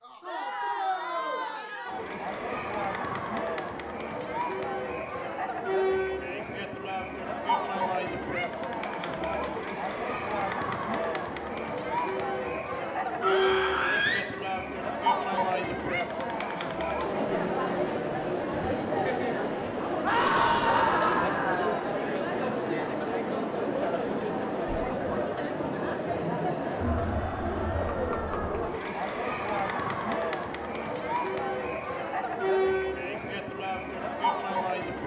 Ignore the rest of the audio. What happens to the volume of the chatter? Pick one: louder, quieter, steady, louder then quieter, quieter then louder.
steady.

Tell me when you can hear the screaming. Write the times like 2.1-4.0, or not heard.
13.2-14.2, 20.0-21.9.